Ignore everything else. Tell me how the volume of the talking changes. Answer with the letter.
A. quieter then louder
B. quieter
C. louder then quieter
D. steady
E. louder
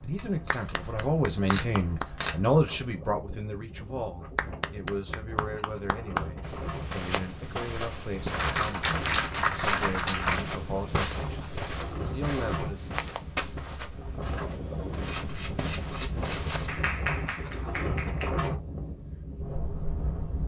B.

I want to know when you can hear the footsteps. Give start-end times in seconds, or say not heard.
6.4-16.8.